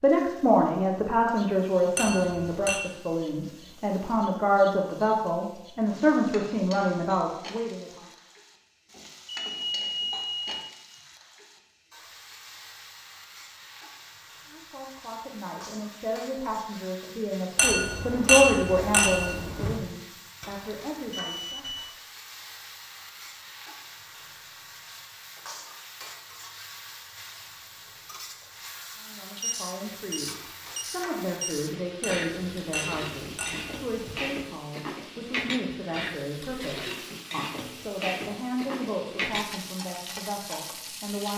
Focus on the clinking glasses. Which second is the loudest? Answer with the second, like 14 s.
18 s.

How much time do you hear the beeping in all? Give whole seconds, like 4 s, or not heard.
5 s.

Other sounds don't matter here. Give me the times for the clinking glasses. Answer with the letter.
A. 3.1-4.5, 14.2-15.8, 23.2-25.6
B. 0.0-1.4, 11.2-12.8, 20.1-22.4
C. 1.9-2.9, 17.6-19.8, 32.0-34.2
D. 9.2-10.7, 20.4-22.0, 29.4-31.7
C.